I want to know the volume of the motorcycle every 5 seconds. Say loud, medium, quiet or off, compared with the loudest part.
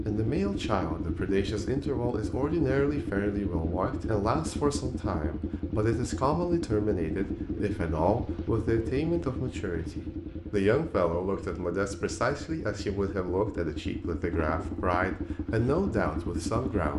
loud, loud, medium, loud.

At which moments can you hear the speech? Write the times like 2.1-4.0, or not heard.
0.1-16.9.